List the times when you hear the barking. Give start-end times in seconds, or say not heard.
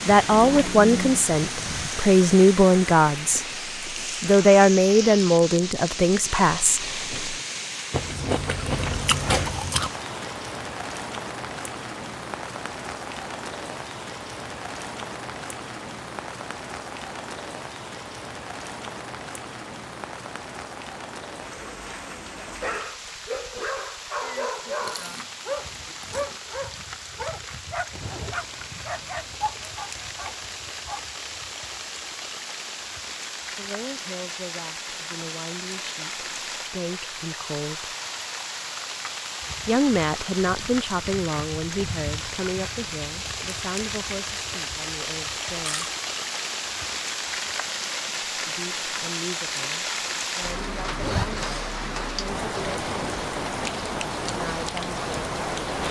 22.5-31.0.